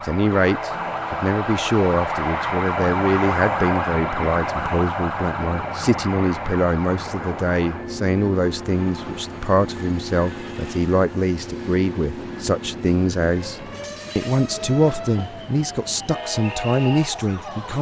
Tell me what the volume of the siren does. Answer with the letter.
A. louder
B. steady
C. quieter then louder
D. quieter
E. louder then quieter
D.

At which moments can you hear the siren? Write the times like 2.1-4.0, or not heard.
0.0-17.7.